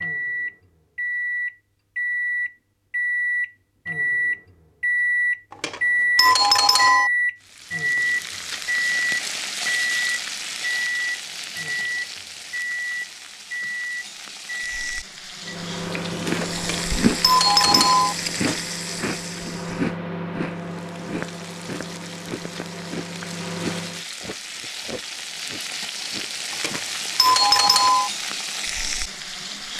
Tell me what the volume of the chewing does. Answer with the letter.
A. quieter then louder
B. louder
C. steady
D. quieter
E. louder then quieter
D.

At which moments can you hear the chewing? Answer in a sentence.
You can hear the chewing from 15.9 to 26.8 s.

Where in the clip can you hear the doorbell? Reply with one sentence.
The doorbell can be heard from 5.5 to 7.1 s, from 16.6 to 18.1 s and from 26.5 to 28.1 s.